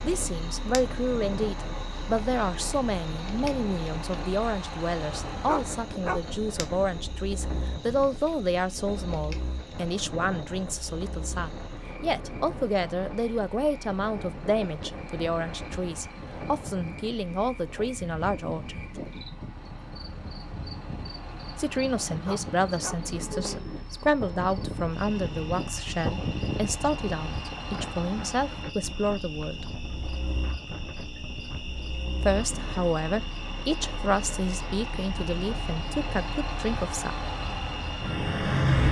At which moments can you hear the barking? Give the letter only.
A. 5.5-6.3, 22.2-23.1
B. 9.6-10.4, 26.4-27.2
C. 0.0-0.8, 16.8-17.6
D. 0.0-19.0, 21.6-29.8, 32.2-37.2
A.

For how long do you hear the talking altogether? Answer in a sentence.
The talking can be heard for 32 seconds in total.